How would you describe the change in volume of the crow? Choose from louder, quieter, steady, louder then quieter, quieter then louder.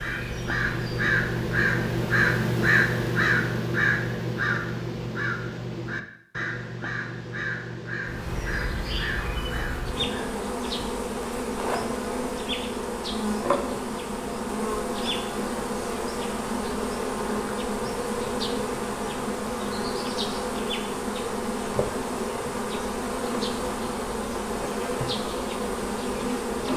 quieter.